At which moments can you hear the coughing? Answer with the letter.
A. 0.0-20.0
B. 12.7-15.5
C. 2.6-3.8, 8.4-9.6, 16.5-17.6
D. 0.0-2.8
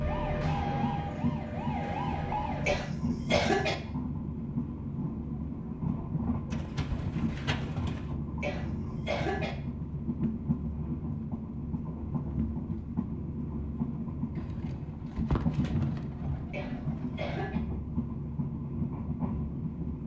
C.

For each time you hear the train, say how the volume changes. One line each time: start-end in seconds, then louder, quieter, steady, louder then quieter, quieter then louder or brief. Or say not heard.
0.0-20.0 steady.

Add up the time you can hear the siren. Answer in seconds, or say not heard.
3 s.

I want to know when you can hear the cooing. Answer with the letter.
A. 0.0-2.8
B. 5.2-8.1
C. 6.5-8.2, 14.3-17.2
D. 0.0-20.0
C.